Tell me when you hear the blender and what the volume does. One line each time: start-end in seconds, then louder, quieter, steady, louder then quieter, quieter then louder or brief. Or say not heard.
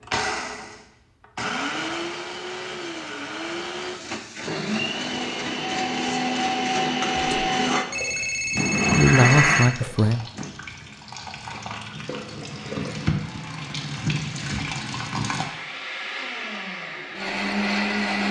0.0-10.5 louder
12.4-18.2 louder.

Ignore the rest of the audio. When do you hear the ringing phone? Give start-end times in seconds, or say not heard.
7.8-9.8.